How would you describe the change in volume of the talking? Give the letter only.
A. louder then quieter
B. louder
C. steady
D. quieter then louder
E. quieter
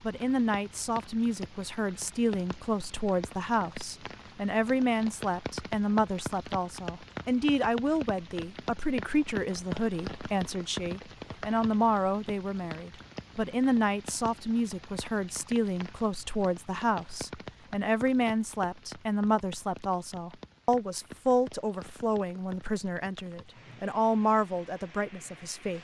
C.